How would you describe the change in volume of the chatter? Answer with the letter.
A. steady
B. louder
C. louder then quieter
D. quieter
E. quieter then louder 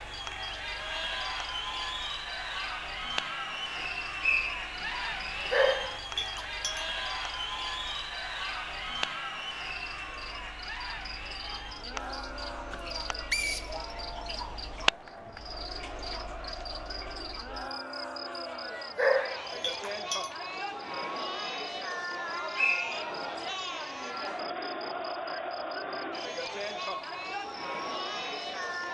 E.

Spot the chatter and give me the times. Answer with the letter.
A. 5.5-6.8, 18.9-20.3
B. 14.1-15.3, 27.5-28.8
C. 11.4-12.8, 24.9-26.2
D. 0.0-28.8
D.